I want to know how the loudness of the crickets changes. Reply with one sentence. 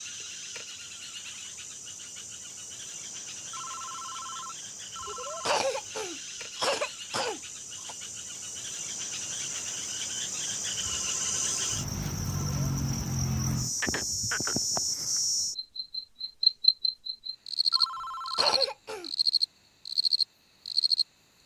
The loudness of the crickets goes up.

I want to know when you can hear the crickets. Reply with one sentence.
The crickets can be heard from 0.0 to 21.4 s.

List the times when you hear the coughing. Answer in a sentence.
The coughing can be heard from 5.5 to 8.0 s and from 18.4 to 19.1 s.